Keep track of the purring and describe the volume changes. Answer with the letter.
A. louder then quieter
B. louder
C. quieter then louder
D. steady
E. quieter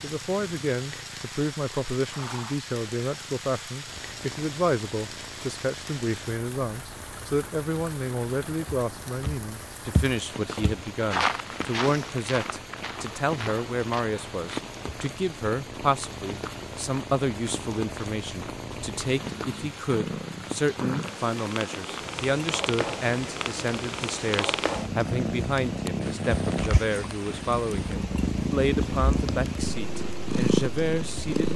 B.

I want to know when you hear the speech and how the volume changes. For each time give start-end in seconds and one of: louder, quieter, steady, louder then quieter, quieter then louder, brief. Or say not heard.
0.0-31.5 steady.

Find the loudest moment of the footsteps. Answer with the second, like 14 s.
11 s.